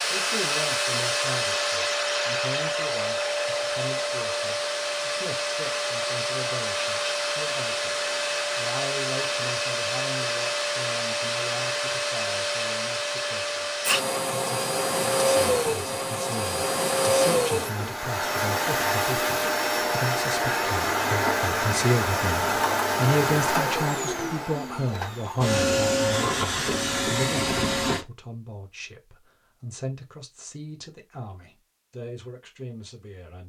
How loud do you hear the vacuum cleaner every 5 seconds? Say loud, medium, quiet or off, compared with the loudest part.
loud, loud, loud, loud, loud, loud, off.